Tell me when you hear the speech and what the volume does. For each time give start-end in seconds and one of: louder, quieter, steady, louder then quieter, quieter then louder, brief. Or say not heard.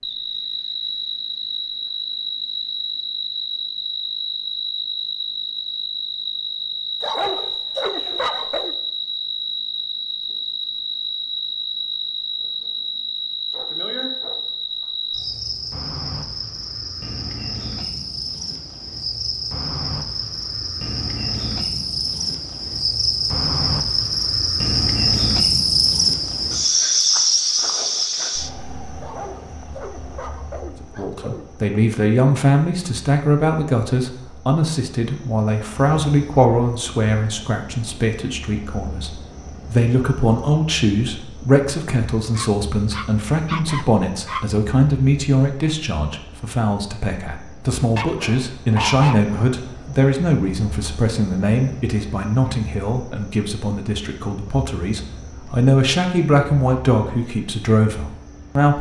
30.8-58.7 steady.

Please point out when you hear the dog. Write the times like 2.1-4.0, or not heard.
7.0-8.8, 13.5-15.3, 29.0-31.6, 42.4-44.5, 48.0-49.5.